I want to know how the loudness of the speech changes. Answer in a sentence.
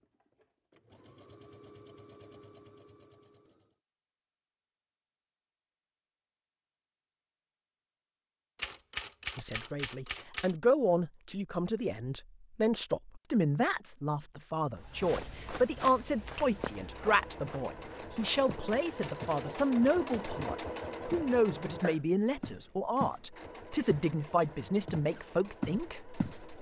The loudness of the speech stays about the same.